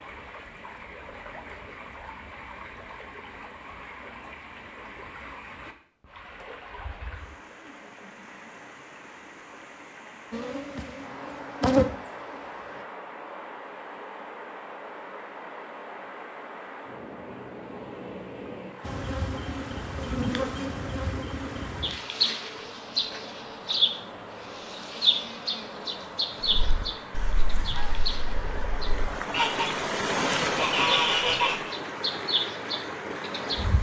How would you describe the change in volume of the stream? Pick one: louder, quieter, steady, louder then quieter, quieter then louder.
louder.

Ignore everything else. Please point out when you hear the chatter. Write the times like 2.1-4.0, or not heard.
not heard.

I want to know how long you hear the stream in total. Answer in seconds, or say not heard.
34 s.